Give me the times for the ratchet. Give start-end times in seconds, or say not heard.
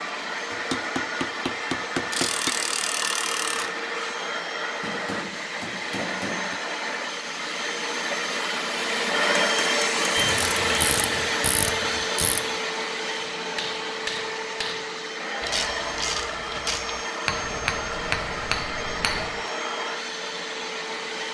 2.1-3.7, 10.2-12.4, 15.4-17.1.